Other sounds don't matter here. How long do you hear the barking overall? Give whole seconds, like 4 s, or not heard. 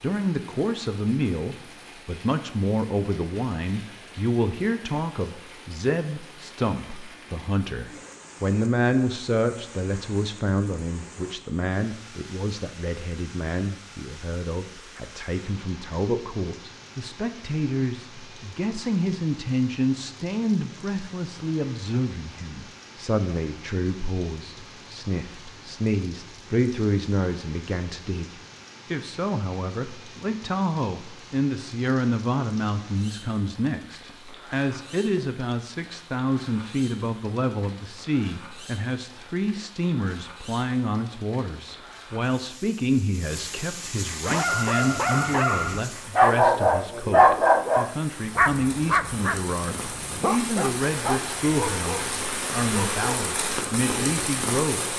9 s.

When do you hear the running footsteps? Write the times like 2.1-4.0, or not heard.
not heard.